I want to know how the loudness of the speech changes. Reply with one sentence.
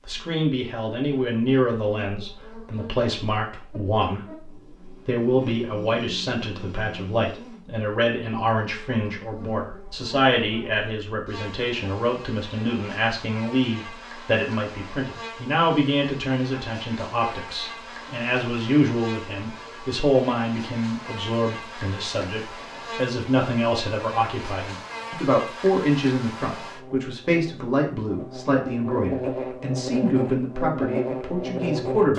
The volume of the speech stays about the same.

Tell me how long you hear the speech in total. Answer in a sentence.
You can hear the speech for 32 seconds altogether.